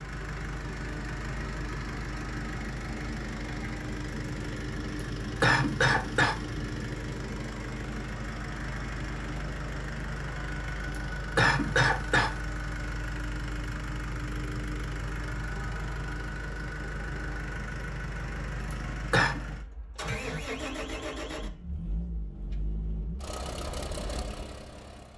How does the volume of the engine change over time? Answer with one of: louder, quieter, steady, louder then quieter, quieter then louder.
steady.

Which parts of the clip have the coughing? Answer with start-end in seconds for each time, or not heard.
5.4-6.4, 11.3-12.3, 18.7-19.4.